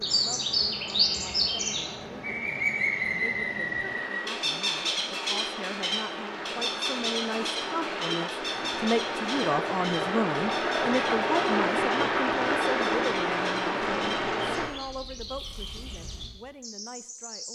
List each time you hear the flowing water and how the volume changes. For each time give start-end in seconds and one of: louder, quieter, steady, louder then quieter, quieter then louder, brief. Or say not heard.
0.0-14.7 louder.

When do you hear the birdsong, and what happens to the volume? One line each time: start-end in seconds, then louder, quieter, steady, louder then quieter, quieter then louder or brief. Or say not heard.
0.0-17.5 quieter.